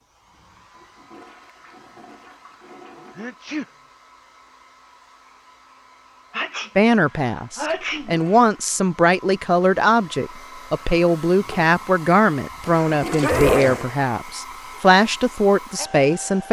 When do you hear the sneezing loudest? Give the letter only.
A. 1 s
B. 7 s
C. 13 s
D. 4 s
C.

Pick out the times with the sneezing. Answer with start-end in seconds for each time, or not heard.
3.1-3.6, 6.3-8.2, 12.5-13.9.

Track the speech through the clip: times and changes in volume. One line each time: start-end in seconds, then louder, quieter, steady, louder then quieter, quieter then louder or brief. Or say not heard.
6.8-16.4 steady.